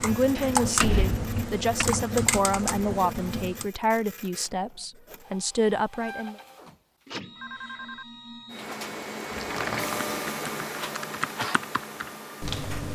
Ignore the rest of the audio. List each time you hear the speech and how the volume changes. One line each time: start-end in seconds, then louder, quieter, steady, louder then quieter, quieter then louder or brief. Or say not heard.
0.0-6.3 steady.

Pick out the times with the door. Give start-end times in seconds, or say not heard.
0.3-1.9, 9.3-10.1.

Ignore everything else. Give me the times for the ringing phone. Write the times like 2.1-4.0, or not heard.
7.3-8.1.